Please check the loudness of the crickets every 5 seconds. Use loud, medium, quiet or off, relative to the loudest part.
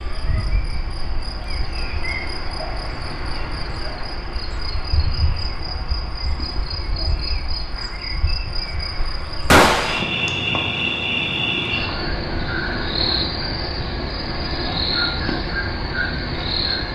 medium, medium, loud, loud.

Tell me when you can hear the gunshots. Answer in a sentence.
You can hear the gunshots from 9.5 to 10.1 s.